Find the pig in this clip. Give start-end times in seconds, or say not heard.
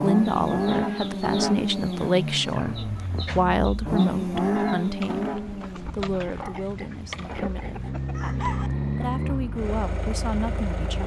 1.9-3.4, 6.2-7.9.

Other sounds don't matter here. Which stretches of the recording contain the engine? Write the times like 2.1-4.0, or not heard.
0.0-11.0.